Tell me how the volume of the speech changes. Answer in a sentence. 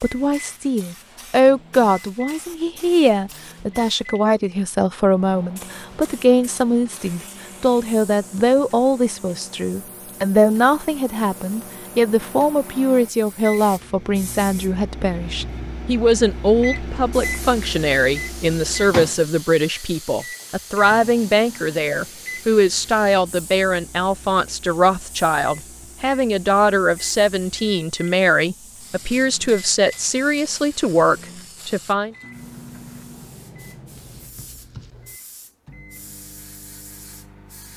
The loudness of the speech stays about the same.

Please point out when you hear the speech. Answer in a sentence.
You can hear the speech from 0.0 to 32.1 s.